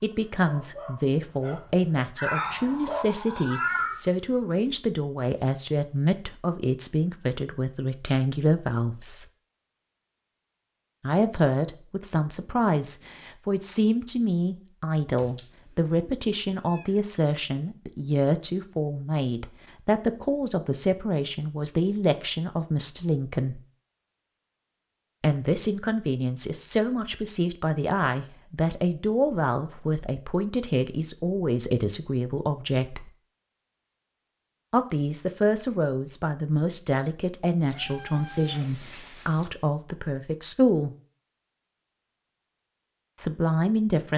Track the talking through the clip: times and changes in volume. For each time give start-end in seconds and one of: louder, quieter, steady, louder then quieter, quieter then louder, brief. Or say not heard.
0.0-9.2 steady
11.0-23.6 steady
25.2-33.1 steady
34.7-40.9 steady
43.1-44.1 brief.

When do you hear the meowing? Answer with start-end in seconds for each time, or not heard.
2.1-4.1, 15.1-16.9, 37.7-39.5.